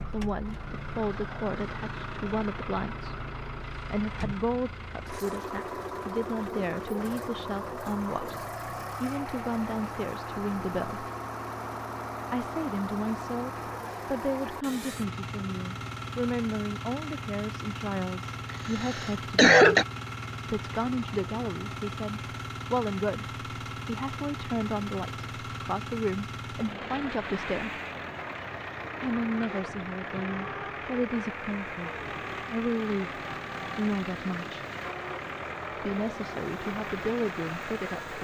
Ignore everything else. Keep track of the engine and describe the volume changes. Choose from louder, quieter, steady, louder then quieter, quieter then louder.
steady.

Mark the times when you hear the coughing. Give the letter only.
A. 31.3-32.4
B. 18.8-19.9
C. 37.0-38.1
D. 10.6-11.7
B.